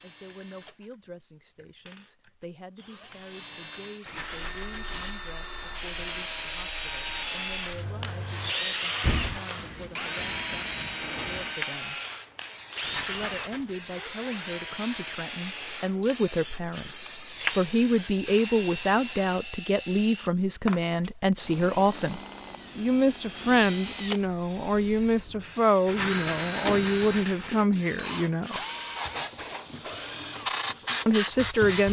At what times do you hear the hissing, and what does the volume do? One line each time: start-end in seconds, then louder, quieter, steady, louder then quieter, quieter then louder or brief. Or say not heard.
4.2-19.4 louder
24.2-31.8 louder.